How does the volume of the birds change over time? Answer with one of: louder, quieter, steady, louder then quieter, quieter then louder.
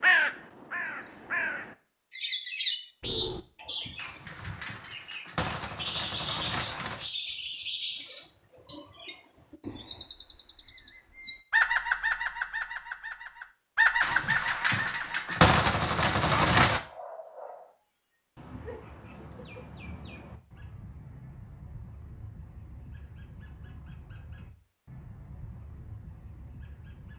quieter.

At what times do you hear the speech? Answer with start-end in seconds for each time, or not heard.
not heard.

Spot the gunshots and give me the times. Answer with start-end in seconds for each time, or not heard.
4.0-7.1, 14.0-16.8.